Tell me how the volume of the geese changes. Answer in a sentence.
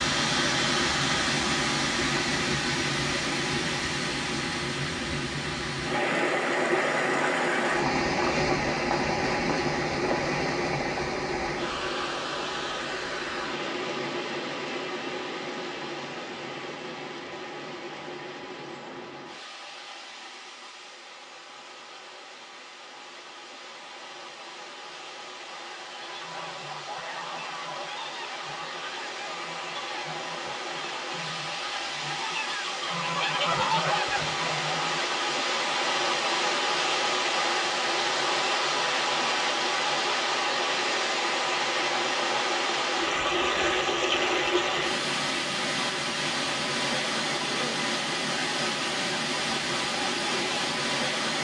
The volume of the geese goes up.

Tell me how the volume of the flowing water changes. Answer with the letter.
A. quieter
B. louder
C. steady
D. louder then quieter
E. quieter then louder
E.